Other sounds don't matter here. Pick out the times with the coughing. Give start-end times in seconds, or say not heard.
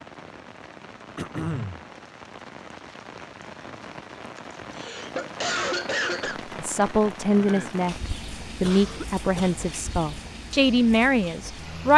1.1-1.9, 4.3-6.3, 8.6-9.6.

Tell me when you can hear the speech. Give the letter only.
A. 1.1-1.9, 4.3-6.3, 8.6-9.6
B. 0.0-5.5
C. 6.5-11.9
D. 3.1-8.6
C.